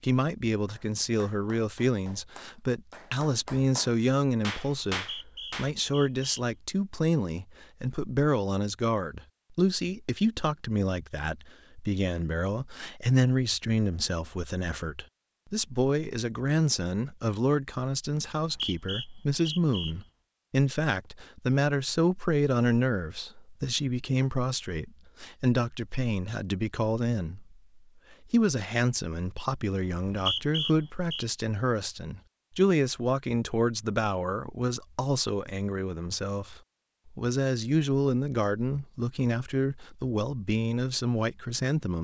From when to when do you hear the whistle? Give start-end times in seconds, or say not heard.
4.9-6.4, 18.3-19.9, 29.9-31.2.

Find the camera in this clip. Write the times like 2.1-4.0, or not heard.
not heard.